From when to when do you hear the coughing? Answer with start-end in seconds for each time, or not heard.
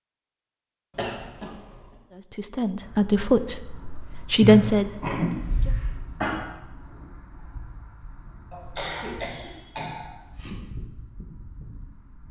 0.9-1.8, 4.4-6.3, 8.5-10.5.